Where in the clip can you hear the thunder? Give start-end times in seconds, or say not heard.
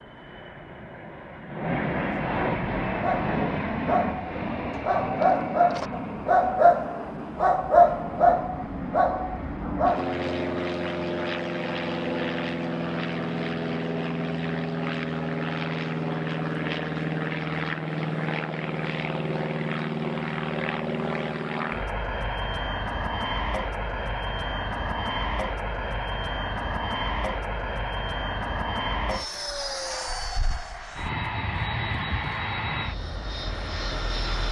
not heard.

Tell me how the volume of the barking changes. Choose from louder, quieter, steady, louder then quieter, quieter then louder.
louder then quieter.